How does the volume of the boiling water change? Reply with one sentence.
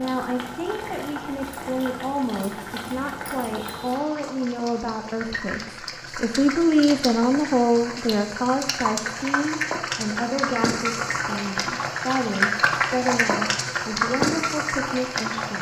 The volume of the boiling water goes up.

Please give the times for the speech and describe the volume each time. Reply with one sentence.
You can hear the speech from 0.0 to 15.5 s, getting louder then quieter.